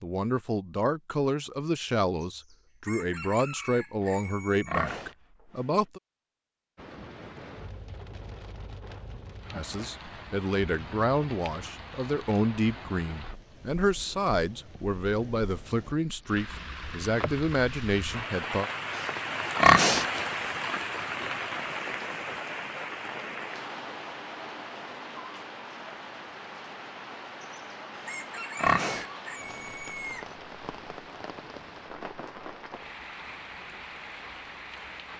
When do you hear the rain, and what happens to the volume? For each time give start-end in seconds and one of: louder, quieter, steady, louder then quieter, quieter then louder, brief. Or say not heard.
6.8-35.1 louder then quieter.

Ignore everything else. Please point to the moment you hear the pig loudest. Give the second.
20 s.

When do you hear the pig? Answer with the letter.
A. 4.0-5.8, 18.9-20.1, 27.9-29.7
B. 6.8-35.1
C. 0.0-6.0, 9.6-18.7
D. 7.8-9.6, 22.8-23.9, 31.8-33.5
A.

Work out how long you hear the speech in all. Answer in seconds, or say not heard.
15 s.